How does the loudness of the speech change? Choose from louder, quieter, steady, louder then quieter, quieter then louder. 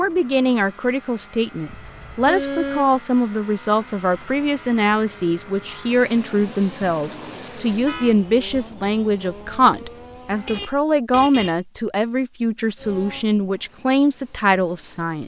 steady.